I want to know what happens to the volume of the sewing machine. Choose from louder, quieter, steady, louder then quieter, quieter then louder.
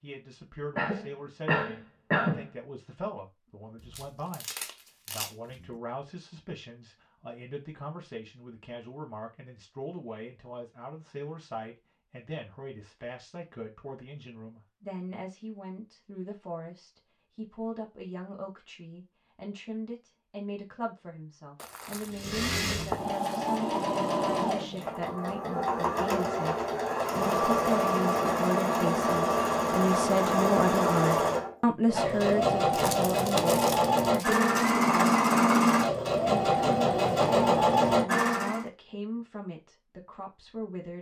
louder.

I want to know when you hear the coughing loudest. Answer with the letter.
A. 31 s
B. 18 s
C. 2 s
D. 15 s
C.